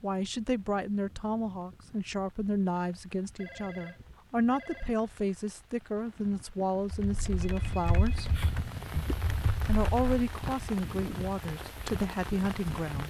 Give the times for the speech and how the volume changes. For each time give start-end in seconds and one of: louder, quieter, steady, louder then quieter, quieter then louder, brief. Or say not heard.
0.0-13.0 steady.